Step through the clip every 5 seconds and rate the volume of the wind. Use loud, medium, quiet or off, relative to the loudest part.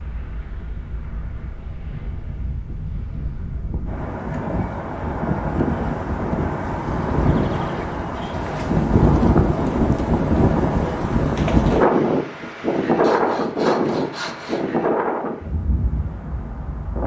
quiet, loud, loud, medium.